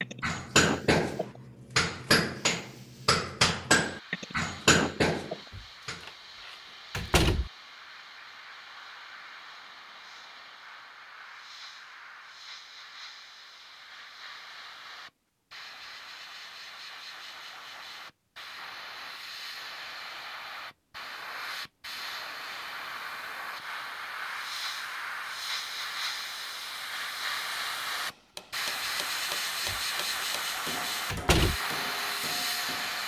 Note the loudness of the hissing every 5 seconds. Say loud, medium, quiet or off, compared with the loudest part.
quiet, quiet, quiet, medium, medium, loud, loud.